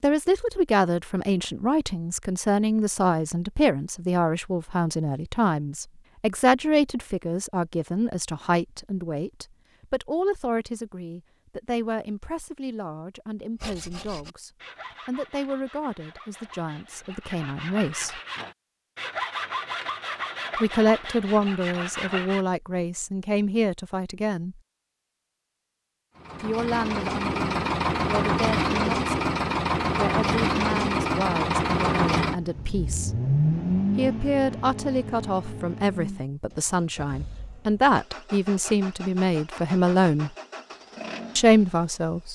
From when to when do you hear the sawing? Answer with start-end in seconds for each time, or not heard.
13.6-22.4.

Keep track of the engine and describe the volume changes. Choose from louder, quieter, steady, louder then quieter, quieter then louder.
quieter.